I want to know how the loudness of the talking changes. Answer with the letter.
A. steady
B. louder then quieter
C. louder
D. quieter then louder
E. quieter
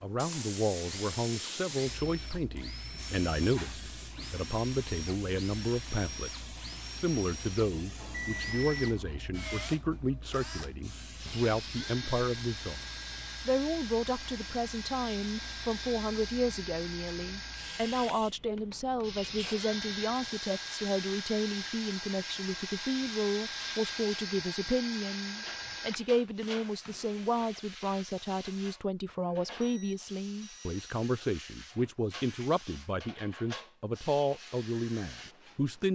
A.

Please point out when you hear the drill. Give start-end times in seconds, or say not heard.
0.1-27.6.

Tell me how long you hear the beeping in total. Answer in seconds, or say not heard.
2 s.